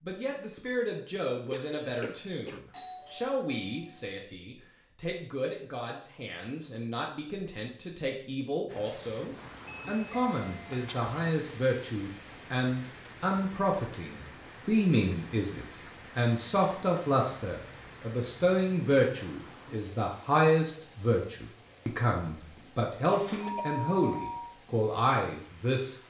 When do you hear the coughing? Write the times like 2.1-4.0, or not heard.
1.5-2.6, 10.7-11.1, 22.6-23.6.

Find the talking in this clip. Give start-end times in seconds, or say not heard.
0.1-25.9.